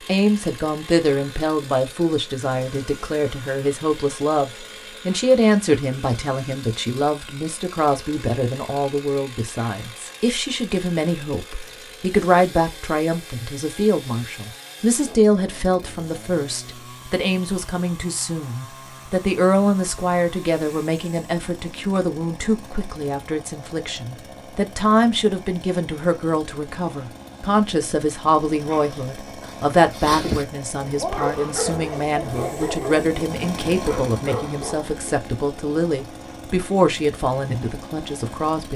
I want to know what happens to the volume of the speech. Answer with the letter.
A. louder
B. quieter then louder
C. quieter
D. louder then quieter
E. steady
E.